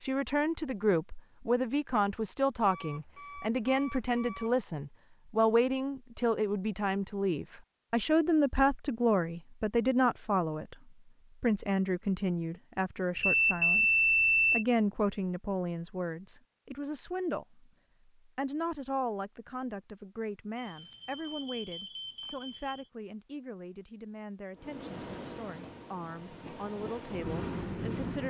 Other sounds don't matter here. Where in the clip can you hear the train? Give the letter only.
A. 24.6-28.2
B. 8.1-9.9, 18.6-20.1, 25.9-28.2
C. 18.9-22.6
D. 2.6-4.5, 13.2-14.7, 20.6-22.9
A.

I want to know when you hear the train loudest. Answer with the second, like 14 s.
28 s.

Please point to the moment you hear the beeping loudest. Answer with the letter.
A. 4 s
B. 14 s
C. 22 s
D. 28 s
B.